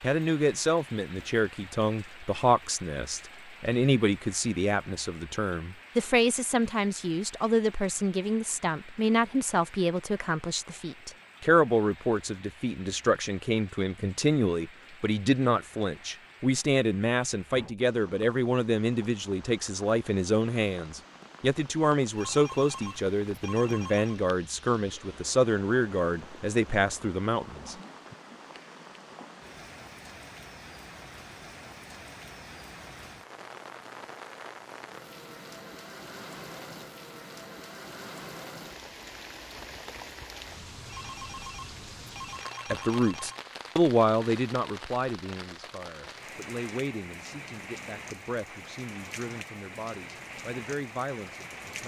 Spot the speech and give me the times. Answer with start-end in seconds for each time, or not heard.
0.0-28.1, 42.7-51.8.